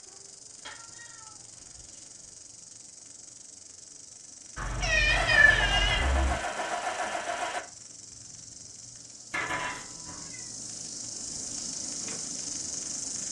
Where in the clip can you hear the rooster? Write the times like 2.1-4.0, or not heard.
not heard.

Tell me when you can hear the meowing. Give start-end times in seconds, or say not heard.
0.7-2.2, 4.5-6.3, 9.3-10.4.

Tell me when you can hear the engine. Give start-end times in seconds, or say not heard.
5.0-7.7.